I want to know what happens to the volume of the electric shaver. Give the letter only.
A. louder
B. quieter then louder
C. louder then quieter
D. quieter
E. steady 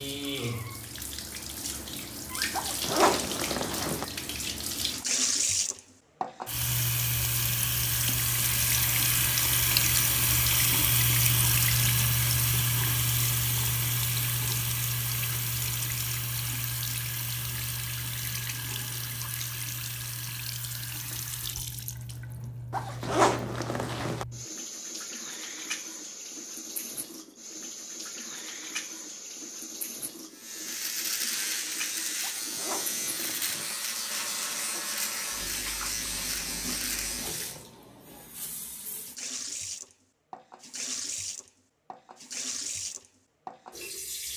E.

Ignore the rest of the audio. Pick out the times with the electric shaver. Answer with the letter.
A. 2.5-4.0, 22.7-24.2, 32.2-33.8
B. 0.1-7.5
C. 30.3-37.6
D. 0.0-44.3
C.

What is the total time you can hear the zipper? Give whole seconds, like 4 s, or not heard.
5 s.